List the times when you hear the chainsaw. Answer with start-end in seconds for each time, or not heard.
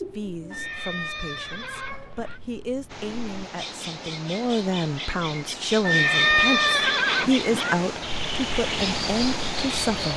not heard.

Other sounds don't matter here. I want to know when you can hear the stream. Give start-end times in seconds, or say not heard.
2.9-10.1.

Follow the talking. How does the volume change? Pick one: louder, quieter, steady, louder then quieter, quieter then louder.
louder.